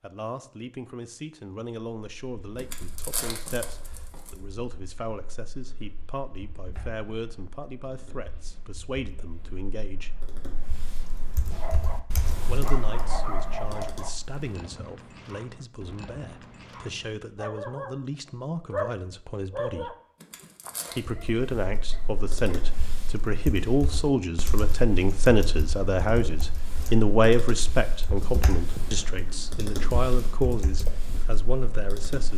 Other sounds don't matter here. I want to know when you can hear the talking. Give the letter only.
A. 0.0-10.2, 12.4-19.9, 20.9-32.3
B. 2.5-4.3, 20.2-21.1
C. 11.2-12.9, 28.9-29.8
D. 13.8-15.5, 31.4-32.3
A.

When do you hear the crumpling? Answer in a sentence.
You can hear the crumpling from 2.5 to 4.3 s and from 20.2 to 21.1 s.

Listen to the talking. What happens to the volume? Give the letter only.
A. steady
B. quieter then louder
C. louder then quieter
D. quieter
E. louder
E.